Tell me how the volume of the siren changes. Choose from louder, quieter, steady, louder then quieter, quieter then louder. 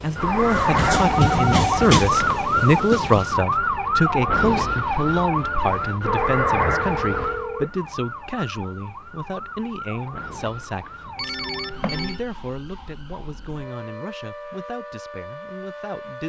quieter.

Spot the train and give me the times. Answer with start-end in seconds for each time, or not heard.
0.0-3.5.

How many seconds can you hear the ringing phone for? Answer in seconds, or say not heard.
4 s.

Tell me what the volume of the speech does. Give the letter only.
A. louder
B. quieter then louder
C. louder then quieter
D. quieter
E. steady
D.